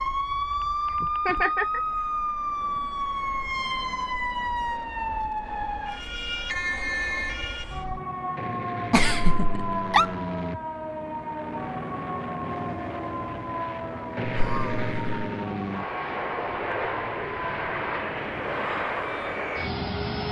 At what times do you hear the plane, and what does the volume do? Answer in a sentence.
You can hear the plane from 0.0 to 20.2 s, getting louder.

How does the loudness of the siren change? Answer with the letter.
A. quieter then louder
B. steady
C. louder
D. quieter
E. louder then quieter
D.